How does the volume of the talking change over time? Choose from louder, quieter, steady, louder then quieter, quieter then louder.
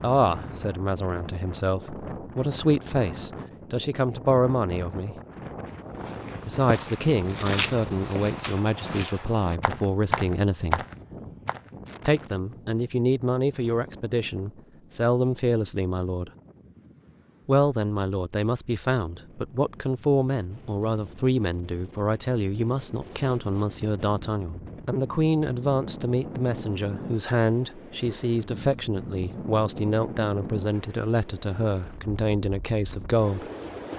steady.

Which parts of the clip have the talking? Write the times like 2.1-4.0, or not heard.
0.0-5.2, 6.5-10.8, 12.1-16.3, 17.4-33.5.